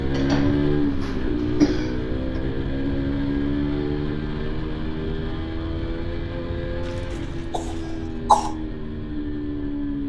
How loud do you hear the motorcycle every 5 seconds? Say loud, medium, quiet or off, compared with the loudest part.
loud, medium.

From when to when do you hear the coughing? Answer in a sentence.
You can hear the coughing from 0.1 to 2.4 s and from 6.8 to 8.5 s.